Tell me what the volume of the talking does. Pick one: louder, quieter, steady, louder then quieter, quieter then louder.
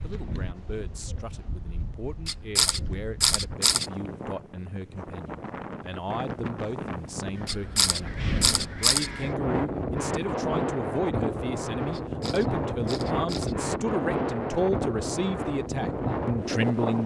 louder.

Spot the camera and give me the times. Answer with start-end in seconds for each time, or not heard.
2.2-3.9, 7.5-9.1, 11.9-13.6.